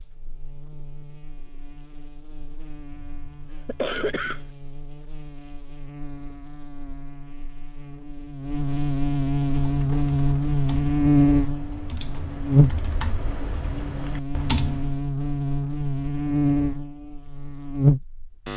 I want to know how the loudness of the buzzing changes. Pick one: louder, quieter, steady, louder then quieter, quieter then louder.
louder.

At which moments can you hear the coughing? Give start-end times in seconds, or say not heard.
2.9-4.5.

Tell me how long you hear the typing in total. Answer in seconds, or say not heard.
6 s.